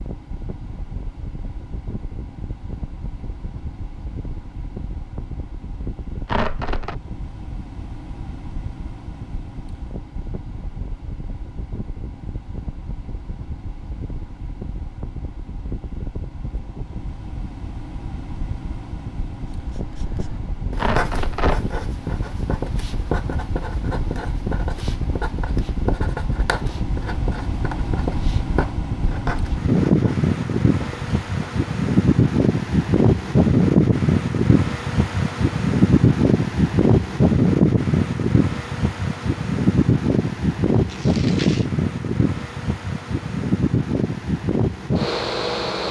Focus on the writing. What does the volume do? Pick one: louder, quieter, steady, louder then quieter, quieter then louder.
steady.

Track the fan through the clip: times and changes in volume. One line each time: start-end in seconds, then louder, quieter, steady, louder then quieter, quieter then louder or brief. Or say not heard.
0.0-45.8 louder.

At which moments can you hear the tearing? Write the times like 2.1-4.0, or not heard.
6.2-7.0, 20.8-21.6, 40.9-41.6.